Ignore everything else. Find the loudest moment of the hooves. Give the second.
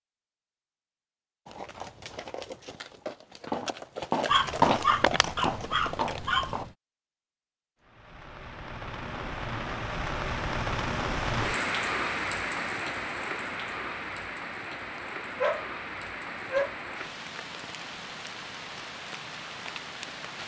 5 s.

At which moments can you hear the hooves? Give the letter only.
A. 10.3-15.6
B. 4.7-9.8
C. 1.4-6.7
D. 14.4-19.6
C.